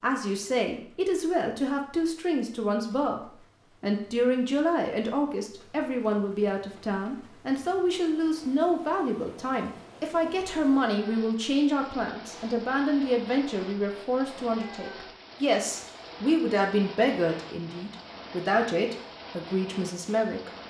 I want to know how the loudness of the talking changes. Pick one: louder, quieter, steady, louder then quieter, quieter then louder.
steady.